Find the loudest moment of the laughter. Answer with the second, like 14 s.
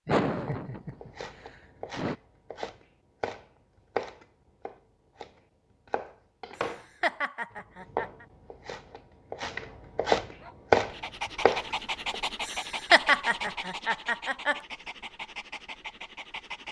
13 s.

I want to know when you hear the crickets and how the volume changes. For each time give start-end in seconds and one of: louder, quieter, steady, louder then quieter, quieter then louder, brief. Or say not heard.
not heard.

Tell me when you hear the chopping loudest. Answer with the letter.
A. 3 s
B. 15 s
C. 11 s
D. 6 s
C.